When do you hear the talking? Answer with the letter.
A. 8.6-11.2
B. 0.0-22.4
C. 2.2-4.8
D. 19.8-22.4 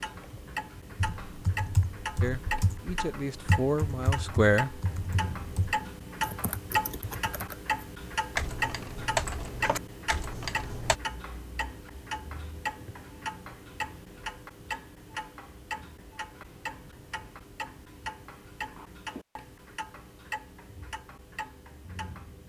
C.